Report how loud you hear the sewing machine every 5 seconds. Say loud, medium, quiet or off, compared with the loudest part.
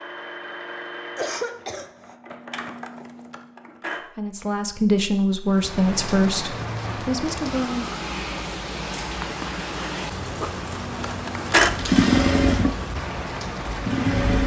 quiet, off, loud.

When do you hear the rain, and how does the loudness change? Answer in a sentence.
You can hear the rain from 5.5 to 14.4 s, at a steady volume.